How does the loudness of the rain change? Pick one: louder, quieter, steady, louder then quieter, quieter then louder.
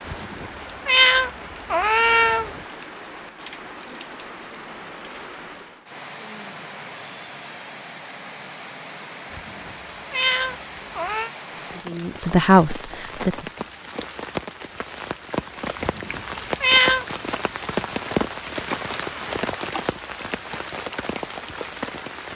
louder.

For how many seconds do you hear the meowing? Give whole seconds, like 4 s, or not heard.
6 s.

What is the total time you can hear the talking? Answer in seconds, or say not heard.
2 s.